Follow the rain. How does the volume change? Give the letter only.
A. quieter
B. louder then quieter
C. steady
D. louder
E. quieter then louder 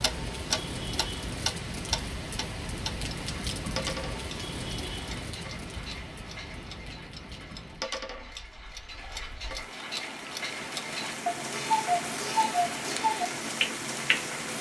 E.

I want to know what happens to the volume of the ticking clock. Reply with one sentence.
The loudness of the ticking clock goes down, then up.